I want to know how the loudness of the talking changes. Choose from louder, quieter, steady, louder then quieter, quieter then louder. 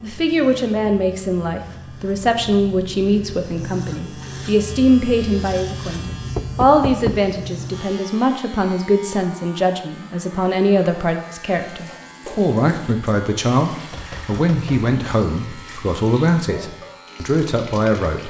steady.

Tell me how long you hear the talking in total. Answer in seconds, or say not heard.
18 s.